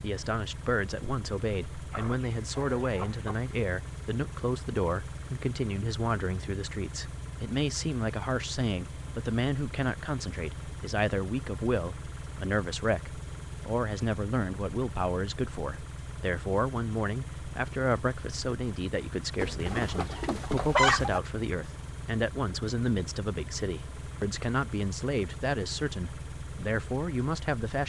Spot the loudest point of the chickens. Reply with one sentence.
The loudest moment of the chickens is at 21 seconds.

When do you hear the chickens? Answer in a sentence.
The chickens can be heard from 1.9 to 3.5 s and from 19.4 to 21.2 s.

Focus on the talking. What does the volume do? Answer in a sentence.
The volume of the talking stays about the same.